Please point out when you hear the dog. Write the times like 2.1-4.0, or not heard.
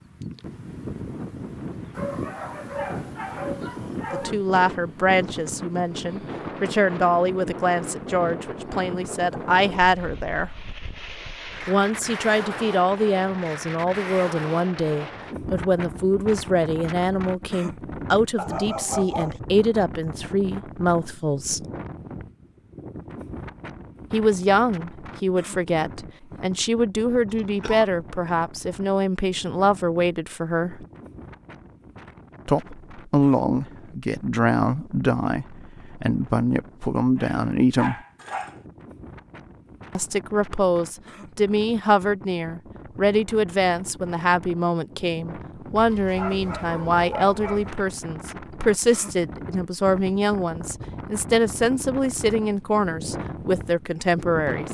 1.9-4.3, 18.4-19.4, 37.1-38.6, 45.8-47.8.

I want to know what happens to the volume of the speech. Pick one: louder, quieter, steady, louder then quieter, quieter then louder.
steady.